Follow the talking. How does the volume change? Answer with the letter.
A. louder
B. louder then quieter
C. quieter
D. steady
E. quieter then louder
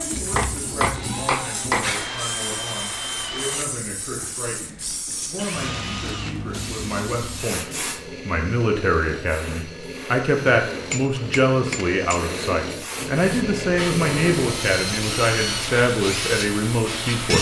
A.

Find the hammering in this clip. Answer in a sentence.
The hammering can be heard from 0.3 to 1.9 s and from 10.7 to 12.2 s.